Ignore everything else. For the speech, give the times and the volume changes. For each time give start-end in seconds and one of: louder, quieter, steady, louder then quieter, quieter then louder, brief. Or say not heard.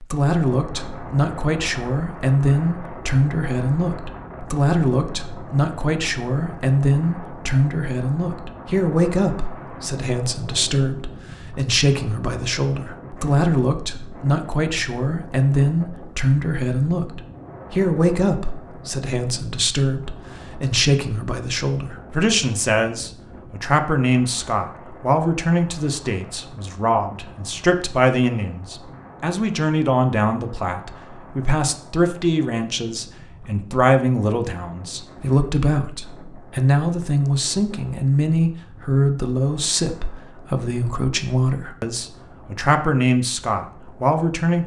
0.0-44.6 steady.